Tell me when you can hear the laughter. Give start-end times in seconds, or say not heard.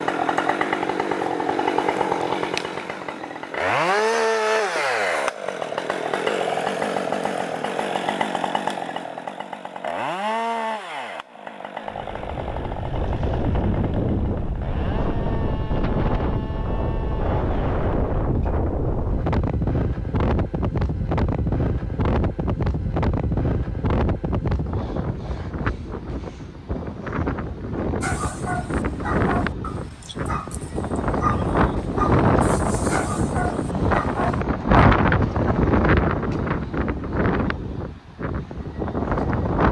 not heard.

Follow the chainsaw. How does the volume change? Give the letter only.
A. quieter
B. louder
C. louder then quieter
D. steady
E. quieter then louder
A.